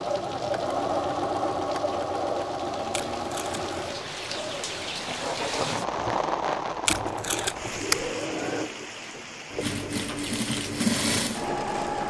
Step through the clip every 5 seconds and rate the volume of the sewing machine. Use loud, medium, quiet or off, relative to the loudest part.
loud, medium, loud.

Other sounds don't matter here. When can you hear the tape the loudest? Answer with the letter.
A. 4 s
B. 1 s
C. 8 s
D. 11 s
C.